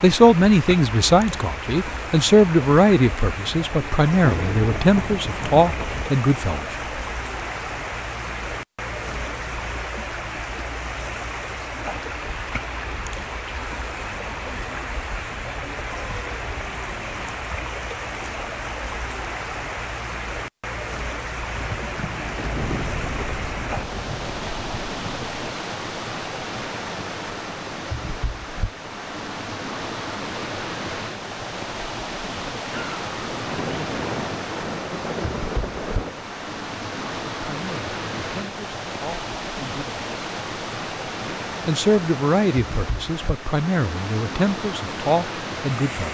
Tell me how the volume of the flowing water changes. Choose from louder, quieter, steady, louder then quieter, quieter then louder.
steady.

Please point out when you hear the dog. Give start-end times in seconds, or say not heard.
not heard.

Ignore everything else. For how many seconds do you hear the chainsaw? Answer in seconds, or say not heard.
not heard.